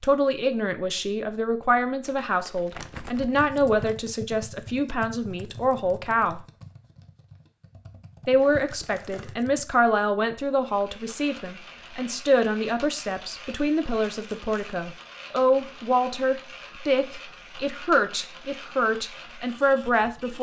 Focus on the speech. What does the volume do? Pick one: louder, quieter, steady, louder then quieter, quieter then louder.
steady.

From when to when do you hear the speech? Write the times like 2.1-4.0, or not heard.
0.0-6.4, 8.2-20.3.